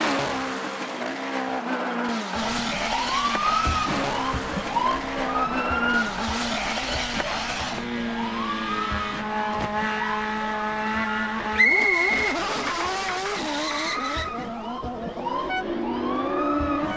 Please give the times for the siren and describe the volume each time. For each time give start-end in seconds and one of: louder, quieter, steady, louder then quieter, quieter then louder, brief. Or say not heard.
2.4-16.9 quieter then louder.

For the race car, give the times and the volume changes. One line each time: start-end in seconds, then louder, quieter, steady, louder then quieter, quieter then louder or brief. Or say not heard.
0.0-16.9 steady.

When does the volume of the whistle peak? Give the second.
12 s.